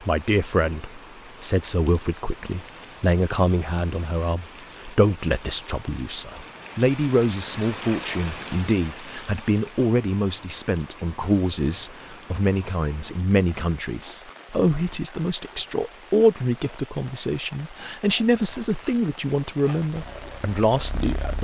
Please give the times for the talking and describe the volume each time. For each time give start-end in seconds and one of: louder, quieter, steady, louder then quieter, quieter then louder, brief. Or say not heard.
0.0-21.3 steady.